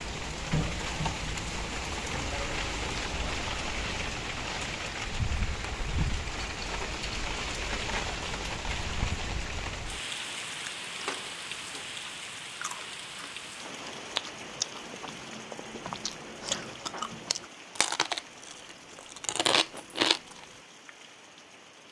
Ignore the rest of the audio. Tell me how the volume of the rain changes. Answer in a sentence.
The loudness of the rain goes down.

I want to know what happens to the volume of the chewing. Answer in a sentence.
The volume of the chewing goes up.